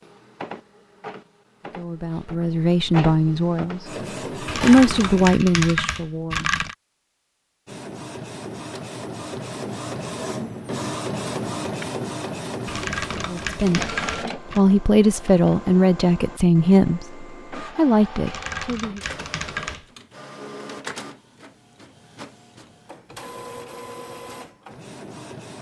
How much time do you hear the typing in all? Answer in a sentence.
You can hear the typing for 6 seconds altogether.